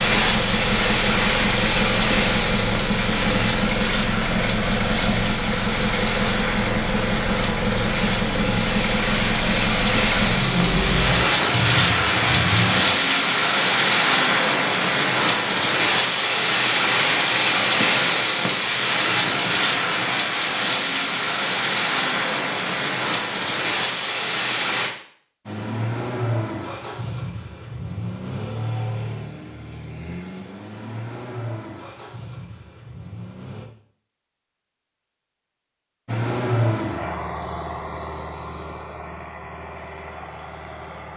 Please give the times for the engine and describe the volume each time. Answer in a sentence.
You can hear the engine from 0.0 to 12.8 s, at a steady volume; from 25.4 to 33.6 s, getting quieter; and from 36.0 to 41.1 s, getting quieter.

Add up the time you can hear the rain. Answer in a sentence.
The rain can be heard for 25 seconds in total.